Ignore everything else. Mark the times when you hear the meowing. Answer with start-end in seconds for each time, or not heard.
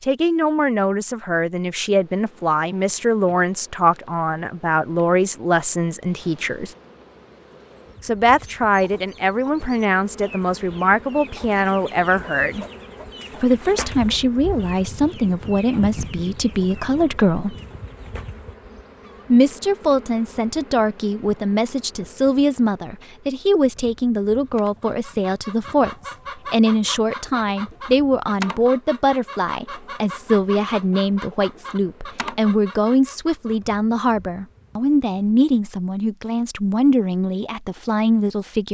not heard.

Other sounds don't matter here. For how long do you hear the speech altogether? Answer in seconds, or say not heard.
35 s.